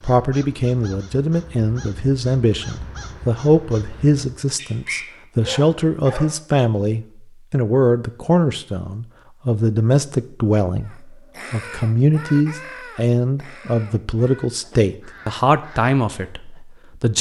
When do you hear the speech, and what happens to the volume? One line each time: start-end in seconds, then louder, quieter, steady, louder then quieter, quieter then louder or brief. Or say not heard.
0.0-17.1 steady.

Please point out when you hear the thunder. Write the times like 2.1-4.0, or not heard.
not heard.